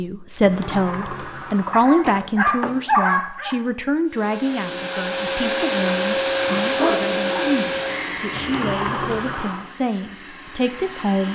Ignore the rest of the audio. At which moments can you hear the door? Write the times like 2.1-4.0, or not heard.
0.4-3.0, 8.3-9.8.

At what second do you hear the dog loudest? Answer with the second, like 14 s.
3 s.